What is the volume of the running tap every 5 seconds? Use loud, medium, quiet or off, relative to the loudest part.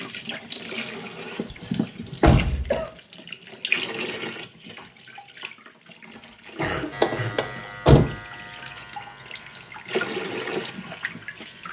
loud, medium, loud.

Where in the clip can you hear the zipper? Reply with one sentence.
The zipper can't be heard in this clip.